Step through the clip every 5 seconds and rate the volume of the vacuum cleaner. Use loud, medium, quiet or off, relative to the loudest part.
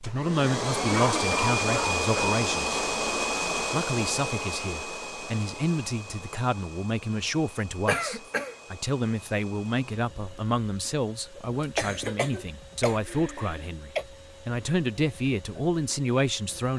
loud, quiet, quiet, quiet.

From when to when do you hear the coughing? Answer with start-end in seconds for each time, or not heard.
0.9-2.4, 7.8-8.6, 11.3-14.1.